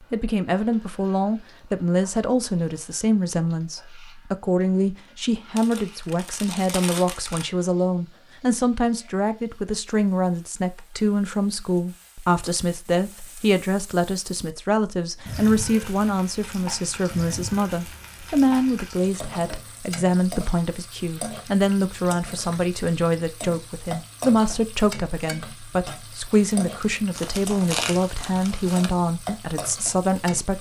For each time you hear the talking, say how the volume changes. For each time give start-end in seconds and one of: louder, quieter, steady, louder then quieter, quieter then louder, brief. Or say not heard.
0.1-30.5 steady.